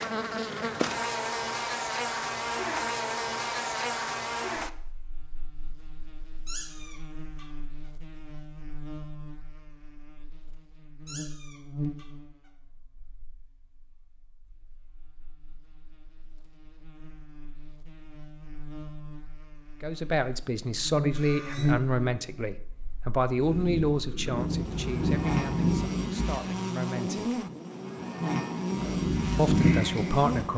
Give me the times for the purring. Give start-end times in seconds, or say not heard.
23.3-26.4, 28.8-30.5.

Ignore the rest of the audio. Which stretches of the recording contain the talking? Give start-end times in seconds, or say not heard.
19.8-27.4, 29.4-30.5.